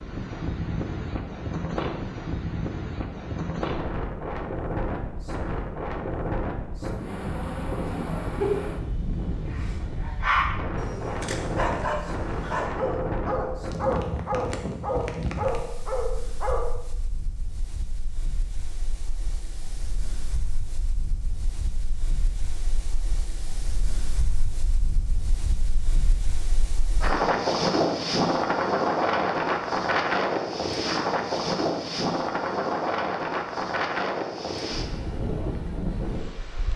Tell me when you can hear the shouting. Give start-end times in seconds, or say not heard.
not heard.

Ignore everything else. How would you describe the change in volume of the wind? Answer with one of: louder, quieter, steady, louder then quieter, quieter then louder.
quieter then louder.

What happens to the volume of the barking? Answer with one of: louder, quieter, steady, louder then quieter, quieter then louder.
louder.